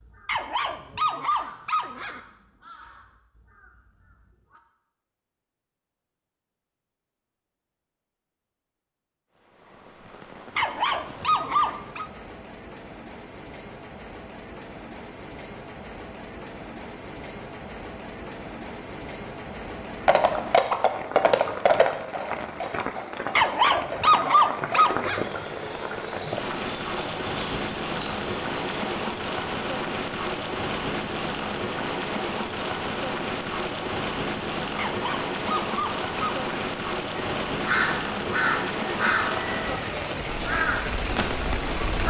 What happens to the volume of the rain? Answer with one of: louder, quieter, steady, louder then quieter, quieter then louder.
louder.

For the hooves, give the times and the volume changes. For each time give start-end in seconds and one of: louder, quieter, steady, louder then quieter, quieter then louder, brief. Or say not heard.
20.1-28.9 quieter.